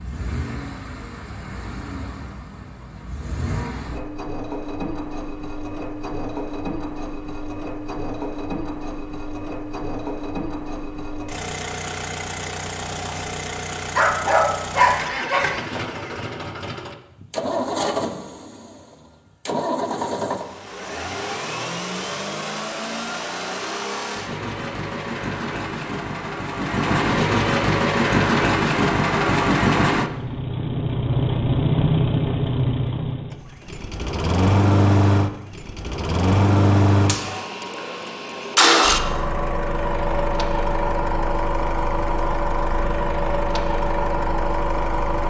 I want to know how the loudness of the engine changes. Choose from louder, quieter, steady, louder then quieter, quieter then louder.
louder.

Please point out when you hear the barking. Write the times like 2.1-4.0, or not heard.
13.9-15.5.